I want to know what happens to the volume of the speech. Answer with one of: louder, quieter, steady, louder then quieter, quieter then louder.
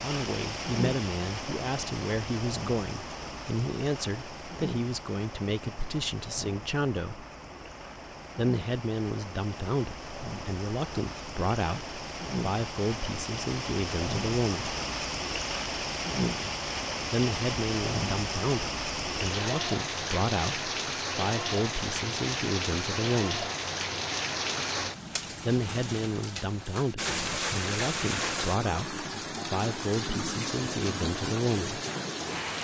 steady.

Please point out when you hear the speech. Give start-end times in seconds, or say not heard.
0.0-7.2, 8.3-14.8, 17.1-23.5, 25.4-31.8.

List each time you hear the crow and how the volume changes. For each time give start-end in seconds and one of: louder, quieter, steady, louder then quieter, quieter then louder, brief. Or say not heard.
not heard.